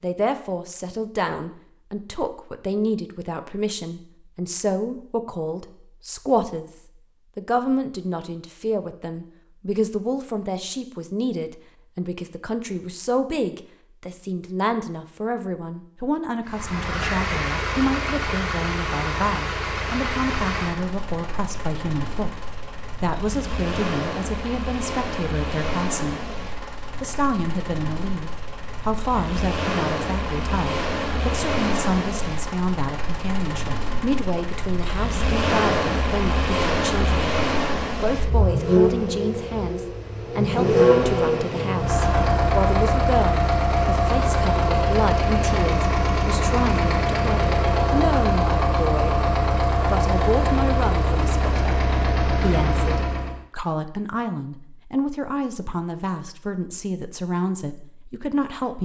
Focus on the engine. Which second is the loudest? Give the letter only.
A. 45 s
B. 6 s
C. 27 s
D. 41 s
D.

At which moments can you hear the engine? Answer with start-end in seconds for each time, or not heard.
16.4-53.4.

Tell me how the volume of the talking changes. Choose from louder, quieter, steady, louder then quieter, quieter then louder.
steady.